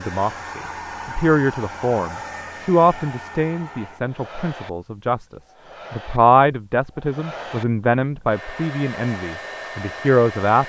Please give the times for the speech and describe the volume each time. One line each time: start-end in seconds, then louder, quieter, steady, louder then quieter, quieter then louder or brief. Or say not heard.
0.0-10.6 steady.